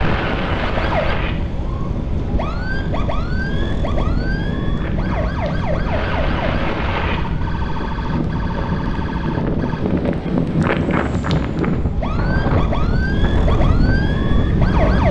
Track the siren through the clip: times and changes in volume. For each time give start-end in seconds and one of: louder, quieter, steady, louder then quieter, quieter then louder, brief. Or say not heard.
0.0-15.0 quieter then louder.